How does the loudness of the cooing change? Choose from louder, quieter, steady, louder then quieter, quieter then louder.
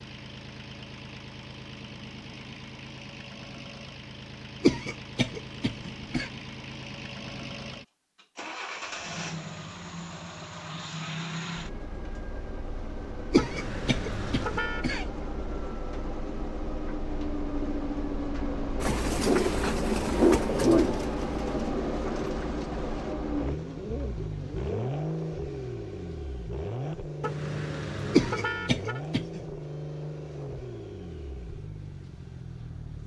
quieter.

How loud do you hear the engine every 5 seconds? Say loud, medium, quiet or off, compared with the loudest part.
medium, medium, medium, loud, loud, loud, medium.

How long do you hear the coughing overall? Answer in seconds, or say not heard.
5 s.